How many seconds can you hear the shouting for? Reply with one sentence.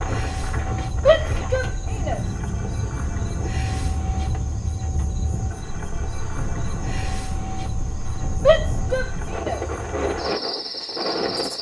The shouting can be heard for 2 seconds in total.